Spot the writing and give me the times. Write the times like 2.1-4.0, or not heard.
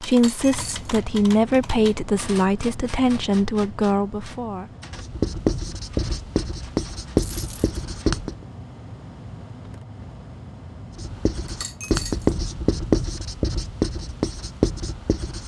4.9-8.3, 10.9-15.4.